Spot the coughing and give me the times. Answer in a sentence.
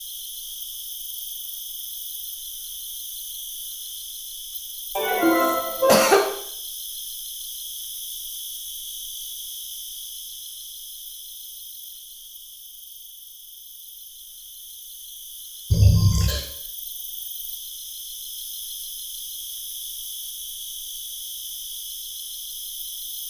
You can hear the coughing from 5.0 to 6.2 s and from 15.7 to 16.4 s.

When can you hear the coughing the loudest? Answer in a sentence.
The loudest moment of the coughing is at 6 seconds.